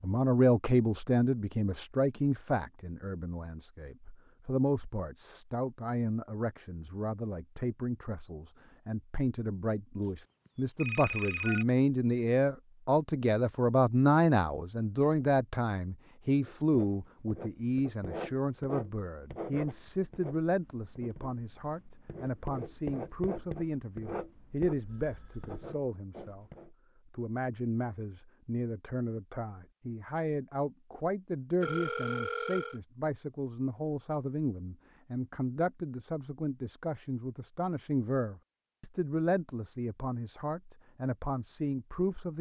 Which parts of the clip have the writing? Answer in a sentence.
The writing can be heard from 16.4 to 26.7 s.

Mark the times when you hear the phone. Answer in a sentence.
You can hear the phone from 10.4 to 11.7 s, from 24.2 to 25.7 s and from 31.6 to 32.8 s.